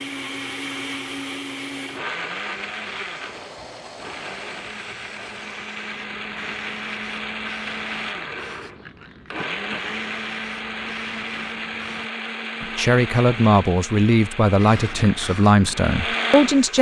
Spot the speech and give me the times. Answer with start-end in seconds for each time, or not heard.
12.6-16.7.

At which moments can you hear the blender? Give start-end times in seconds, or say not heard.
0.0-16.7.